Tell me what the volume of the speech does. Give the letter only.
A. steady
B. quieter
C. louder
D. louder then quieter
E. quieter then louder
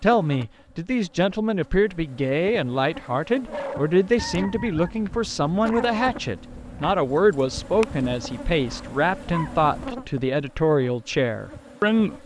A.